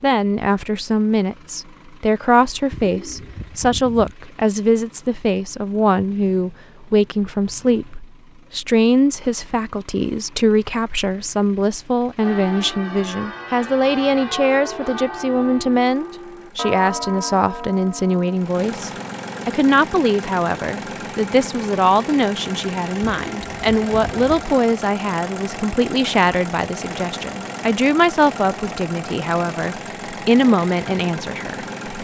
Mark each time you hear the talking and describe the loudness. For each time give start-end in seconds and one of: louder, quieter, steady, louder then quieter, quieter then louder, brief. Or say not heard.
0.0-31.6 steady.